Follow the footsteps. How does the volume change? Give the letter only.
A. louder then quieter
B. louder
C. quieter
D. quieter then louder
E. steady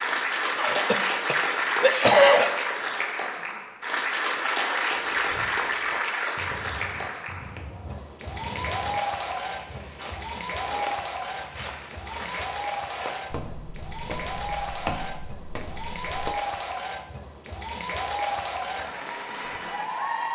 B.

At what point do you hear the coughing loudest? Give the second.
2 s.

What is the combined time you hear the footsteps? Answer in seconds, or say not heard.
11 s.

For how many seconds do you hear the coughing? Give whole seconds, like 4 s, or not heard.
2 s.